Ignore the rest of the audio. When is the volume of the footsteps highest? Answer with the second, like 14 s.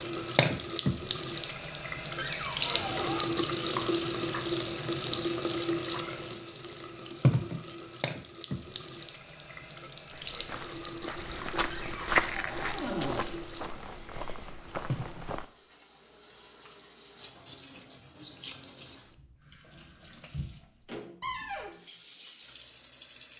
12 s.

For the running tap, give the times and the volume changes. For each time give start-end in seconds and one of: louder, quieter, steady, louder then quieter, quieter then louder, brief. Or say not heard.
0.0-23.3 quieter.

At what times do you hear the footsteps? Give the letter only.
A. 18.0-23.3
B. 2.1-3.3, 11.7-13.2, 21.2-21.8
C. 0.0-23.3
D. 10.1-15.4
D.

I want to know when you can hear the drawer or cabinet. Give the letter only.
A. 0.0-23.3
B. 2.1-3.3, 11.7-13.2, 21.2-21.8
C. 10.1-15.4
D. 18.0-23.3
B.